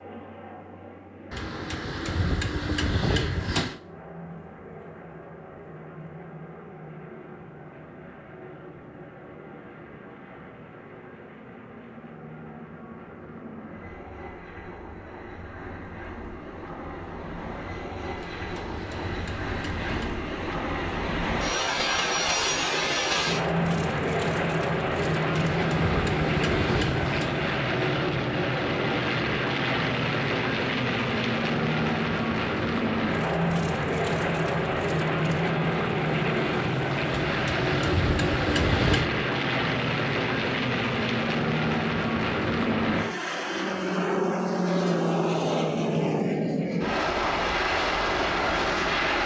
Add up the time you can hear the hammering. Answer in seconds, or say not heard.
9 s.